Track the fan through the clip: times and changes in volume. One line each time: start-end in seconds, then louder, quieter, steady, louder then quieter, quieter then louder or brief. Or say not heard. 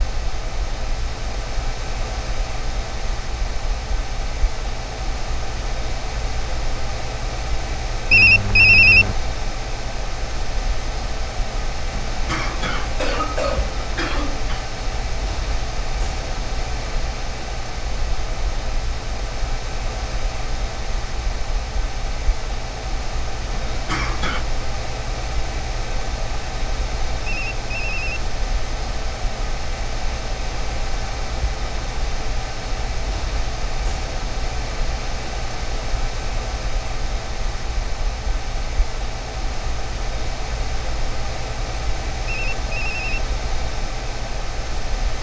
0.0-45.1 steady.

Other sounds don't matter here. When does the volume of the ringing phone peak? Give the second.
9 s.